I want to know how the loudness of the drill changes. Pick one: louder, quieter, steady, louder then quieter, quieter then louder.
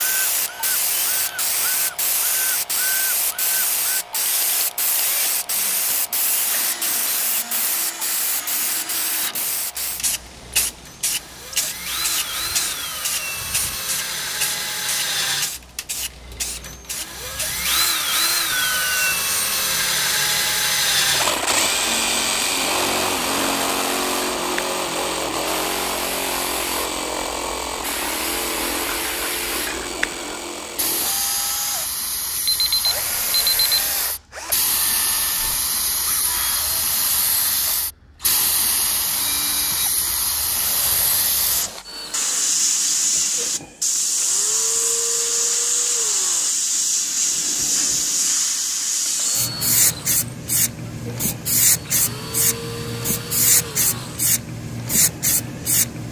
louder then quieter.